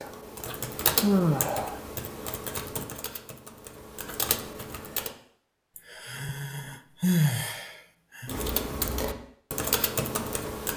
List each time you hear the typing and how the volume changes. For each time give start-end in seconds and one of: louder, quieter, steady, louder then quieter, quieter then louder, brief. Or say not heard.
0.0-5.2 quieter then louder
8.2-10.7 brief.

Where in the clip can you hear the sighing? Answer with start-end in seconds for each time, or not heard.
1.0-1.8, 5.8-8.3.